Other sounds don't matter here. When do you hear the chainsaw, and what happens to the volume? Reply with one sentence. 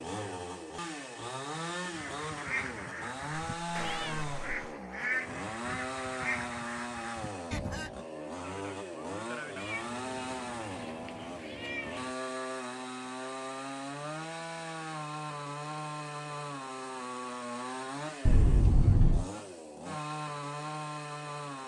The chainsaw can be heard from 0.0 to 21.6 s, at a steady volume.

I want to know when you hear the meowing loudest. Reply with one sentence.
The volume of the meowing peaks at 19 seconds.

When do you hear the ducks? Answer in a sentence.
The ducks can be heard from 1.9 to 8.0 s.